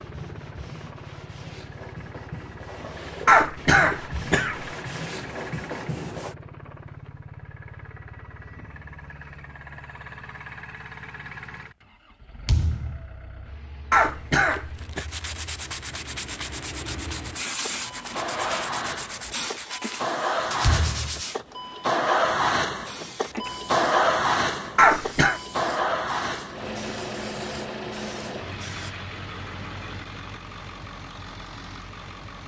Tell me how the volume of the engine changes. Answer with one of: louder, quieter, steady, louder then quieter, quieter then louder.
louder then quieter.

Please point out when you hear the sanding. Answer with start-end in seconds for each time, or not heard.
0.0-6.3, 14.5-21.4.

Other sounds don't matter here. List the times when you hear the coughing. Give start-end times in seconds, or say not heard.
3.2-4.7, 13.9-15.1, 24.8-25.4.